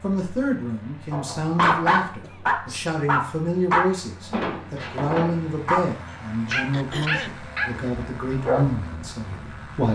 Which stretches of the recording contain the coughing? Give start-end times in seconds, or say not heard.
2.0-2.9, 6.7-7.4.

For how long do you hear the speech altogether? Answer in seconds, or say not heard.
10 s.